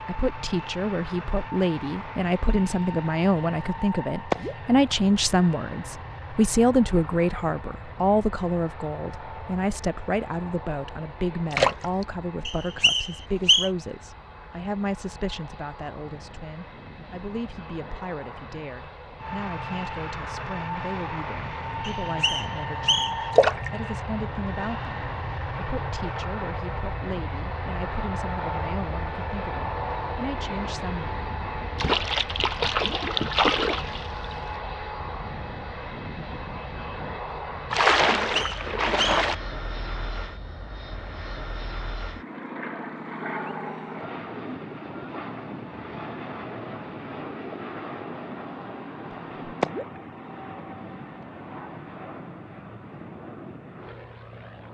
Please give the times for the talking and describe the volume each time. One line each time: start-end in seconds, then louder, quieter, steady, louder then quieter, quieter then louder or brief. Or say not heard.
0.0-31.2 quieter.